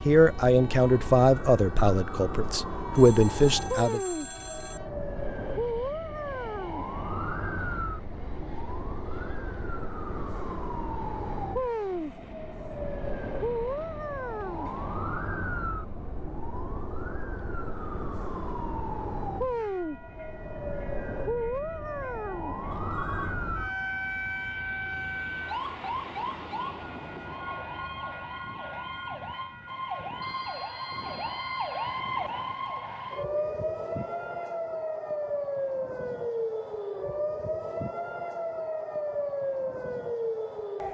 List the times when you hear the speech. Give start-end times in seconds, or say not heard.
0.1-4.0.